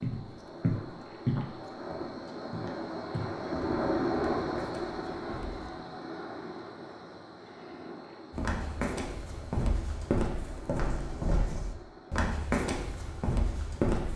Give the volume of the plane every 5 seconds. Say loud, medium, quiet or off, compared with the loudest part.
loud, medium, quiet.